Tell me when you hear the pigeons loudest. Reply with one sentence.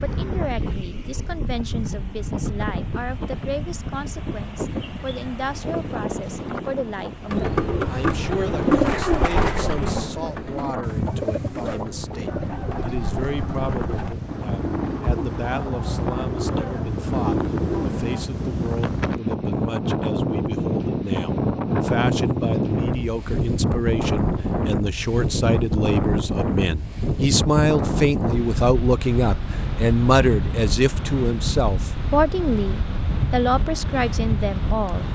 The volume of the pigeons peaks at 9 seconds.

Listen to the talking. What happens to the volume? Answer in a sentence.
The loudness of the talking goes up.